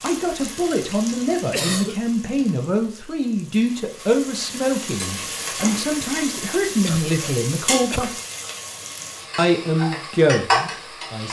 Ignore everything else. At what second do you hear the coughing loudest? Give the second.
2 s.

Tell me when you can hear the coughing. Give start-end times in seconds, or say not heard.
1.5-2.0, 6.8-8.1.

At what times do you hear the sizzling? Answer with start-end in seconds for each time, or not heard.
0.0-11.2.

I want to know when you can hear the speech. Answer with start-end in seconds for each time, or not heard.
0.0-8.1, 9.3-11.2.